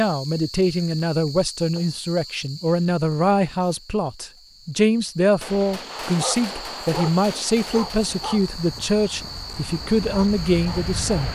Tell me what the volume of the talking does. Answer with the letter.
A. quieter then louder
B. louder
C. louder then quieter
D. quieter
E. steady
E.